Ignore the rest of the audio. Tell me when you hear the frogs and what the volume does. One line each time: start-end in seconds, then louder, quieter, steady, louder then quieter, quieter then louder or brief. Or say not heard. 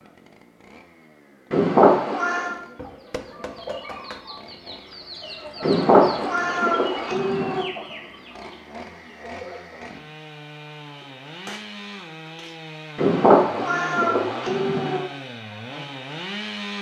not heard.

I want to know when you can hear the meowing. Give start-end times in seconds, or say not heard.
1.5-2.5, 5.6-7.7, 12.9-15.0.